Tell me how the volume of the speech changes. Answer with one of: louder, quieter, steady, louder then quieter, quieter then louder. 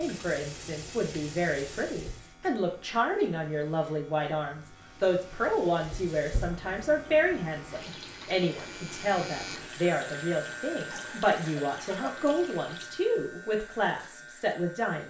steady.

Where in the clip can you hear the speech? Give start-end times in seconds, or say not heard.
0.0-15.0.